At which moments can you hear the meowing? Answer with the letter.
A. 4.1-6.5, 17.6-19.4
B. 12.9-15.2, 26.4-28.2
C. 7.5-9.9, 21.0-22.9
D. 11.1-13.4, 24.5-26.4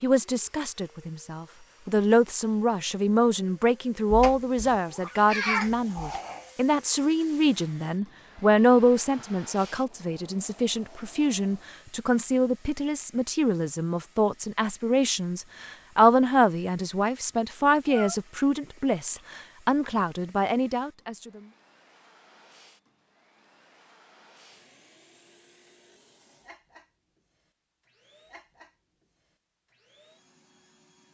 A.